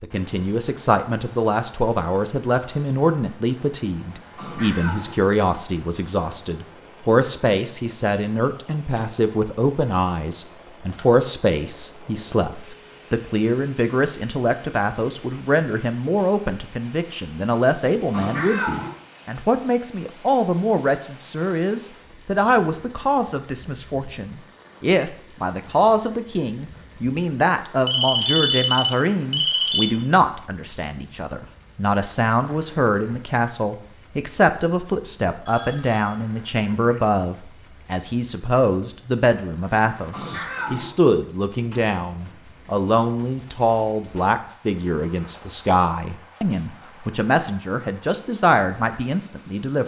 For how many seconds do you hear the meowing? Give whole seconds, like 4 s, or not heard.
3 s.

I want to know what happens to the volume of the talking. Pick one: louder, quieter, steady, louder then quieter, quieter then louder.
steady.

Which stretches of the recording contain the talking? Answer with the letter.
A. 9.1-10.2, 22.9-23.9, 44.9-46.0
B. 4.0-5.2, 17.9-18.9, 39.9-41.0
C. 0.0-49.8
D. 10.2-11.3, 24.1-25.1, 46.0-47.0
C.